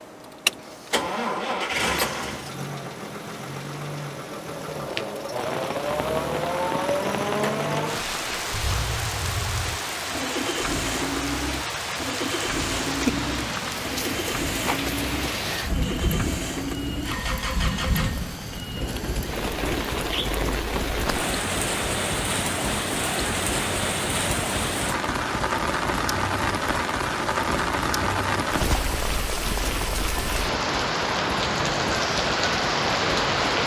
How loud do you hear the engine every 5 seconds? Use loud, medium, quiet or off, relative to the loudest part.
loud, loud, loud, loud, medium, medium, medium.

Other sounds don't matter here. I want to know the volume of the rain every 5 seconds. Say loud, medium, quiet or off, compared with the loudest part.
off, medium, medium, medium, loud, loud, loud.